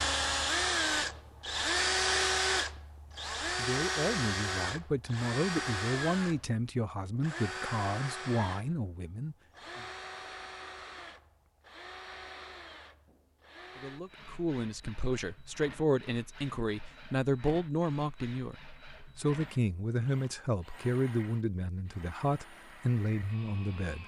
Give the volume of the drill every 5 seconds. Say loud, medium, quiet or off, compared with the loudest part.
loud, medium, quiet, quiet, quiet.